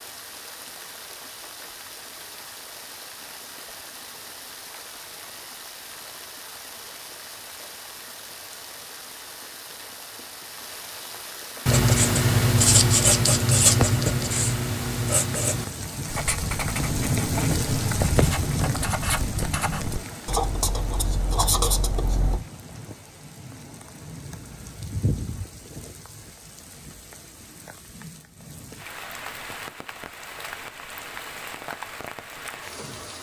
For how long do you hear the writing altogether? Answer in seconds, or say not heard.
11 s.